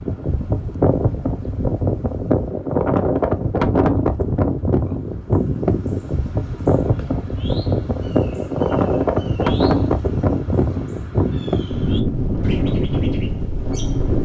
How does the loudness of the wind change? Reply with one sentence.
The volume of the wind stays about the same.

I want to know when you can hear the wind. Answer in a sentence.
The wind can be heard from 0.0 to 14.1 s.